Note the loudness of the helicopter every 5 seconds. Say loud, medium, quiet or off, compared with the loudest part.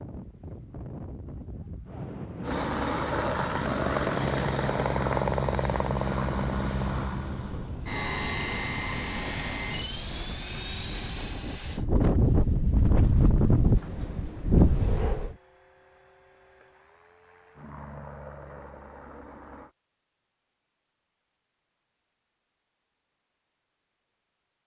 loud, loud, medium, quiet, off.